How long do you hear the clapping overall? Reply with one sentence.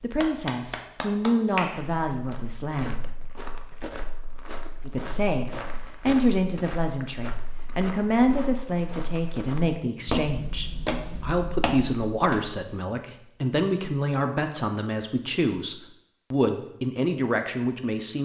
You can hear the clapping for 2 seconds altogether.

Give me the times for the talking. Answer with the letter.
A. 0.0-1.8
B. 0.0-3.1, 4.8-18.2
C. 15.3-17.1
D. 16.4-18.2
B.